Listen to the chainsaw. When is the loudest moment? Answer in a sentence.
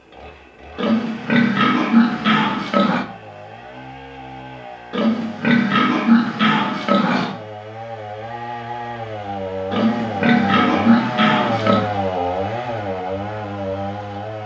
The volume of the chainsaw peaks at 12 seconds.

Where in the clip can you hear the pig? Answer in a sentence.
The pig can be heard from 0.8 to 3.0 s, from 4.9 to 7.3 s and from 9.7 to 11.9 s.